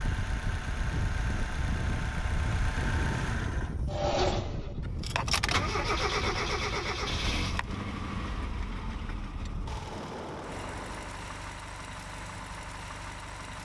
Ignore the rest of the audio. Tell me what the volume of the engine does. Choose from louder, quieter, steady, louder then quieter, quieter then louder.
louder then quieter.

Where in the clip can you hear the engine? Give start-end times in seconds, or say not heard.
0.0-13.6.